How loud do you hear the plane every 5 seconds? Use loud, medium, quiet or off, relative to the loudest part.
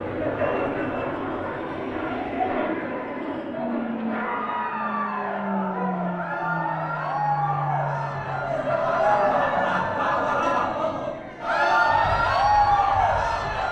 loud, loud, medium.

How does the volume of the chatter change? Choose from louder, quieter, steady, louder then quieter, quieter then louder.
louder.